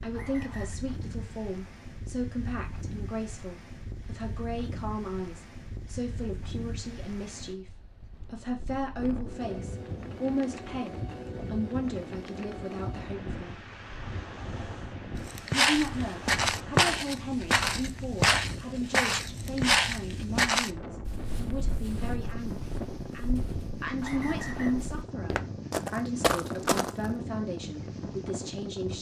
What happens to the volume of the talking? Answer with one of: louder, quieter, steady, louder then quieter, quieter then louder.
steady.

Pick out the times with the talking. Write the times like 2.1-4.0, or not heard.
0.0-13.5, 15.5-28.9.